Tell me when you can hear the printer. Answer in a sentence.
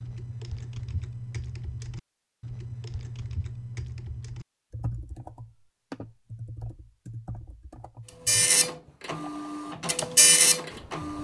You can hear the printer from 8.2 to 11.1 s.